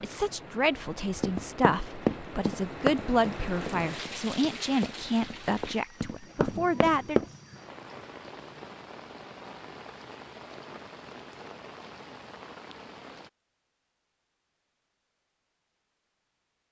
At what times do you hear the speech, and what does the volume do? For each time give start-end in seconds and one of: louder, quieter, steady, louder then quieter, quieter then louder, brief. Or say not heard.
0.0-7.2 steady.